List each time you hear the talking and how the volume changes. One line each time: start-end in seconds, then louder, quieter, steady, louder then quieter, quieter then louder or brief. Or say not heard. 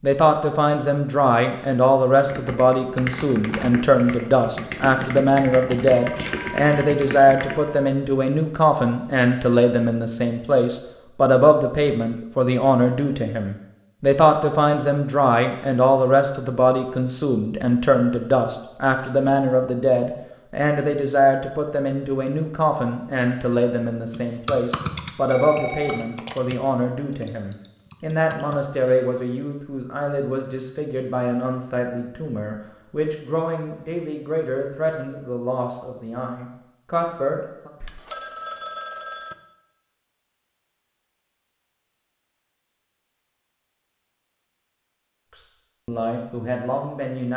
0.0-37.7 quieter
45.4-47.3 brief.